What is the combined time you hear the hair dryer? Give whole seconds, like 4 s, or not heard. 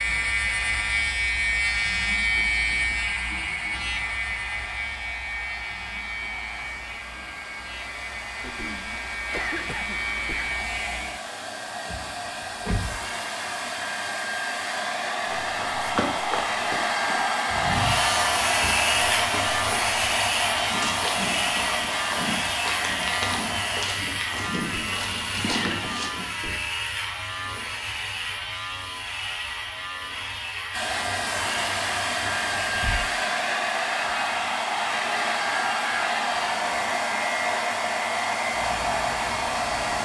33 s.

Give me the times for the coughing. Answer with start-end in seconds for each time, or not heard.
8.4-10.4, 24.7-26.6.